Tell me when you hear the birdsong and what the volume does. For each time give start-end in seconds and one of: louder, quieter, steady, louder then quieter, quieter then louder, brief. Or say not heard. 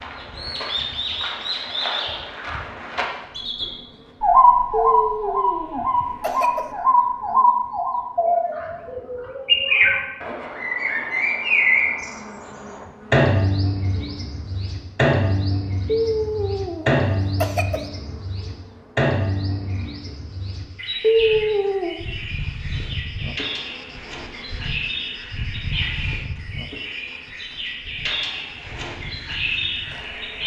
0.0-30.4 quieter.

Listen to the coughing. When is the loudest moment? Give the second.
21 s.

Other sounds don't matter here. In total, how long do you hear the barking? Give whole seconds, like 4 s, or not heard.
not heard.